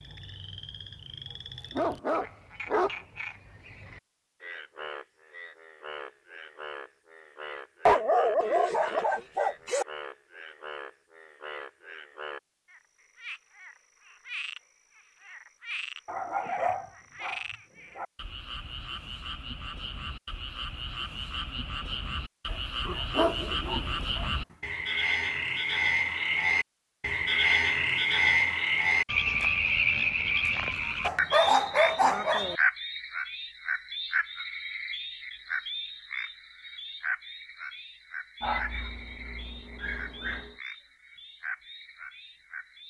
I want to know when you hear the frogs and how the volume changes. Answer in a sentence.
You can hear the frogs from 0.0 to 42.8 s, getting louder then quieter.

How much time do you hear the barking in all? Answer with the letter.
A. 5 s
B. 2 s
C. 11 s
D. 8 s
C.